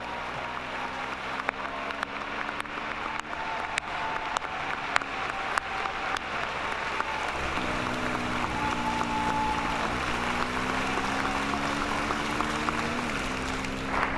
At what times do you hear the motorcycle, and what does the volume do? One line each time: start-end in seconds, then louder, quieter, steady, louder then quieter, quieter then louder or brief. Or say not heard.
0.0-14.1 louder.